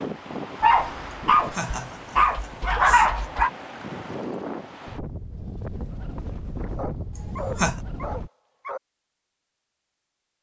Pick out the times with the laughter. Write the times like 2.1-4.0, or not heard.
1.1-3.2, 7.2-7.8.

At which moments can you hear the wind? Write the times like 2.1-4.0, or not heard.
0.0-8.3.